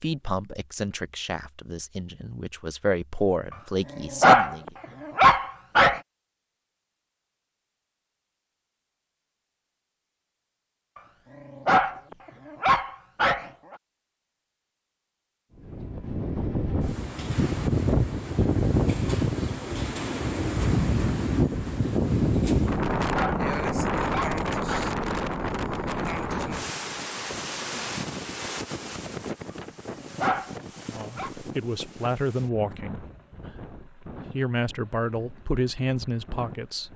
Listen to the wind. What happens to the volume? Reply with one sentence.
The volume of the wind goes down.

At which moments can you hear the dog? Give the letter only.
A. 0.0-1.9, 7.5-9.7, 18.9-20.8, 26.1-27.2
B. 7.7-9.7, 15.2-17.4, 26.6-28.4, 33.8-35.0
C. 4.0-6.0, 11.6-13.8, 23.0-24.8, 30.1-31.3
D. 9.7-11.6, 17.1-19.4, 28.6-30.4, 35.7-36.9
C.